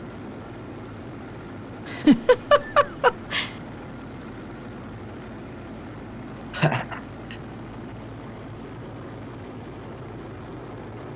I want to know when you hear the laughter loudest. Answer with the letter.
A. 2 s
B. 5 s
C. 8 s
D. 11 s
A.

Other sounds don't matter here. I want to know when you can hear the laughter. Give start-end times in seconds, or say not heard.
1.9-3.5, 6.5-7.3.